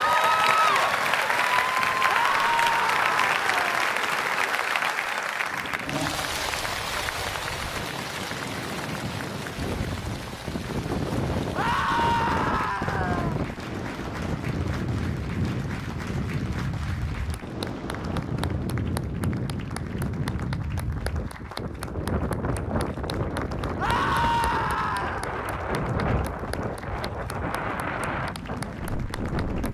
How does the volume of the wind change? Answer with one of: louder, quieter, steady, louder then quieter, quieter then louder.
louder.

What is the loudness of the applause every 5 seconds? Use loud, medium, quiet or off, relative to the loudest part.
loud, medium, quiet, quiet, quiet, quiet.